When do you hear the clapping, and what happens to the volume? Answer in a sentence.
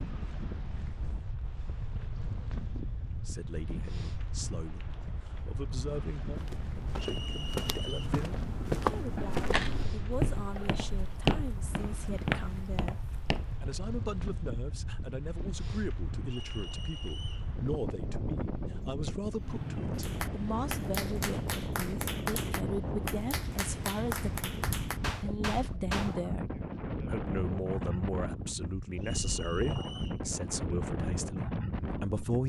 You can hear the clapping from 19.9 to 26.1 s, at a steady volume.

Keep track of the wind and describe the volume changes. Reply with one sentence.
The volume of the wind goes up.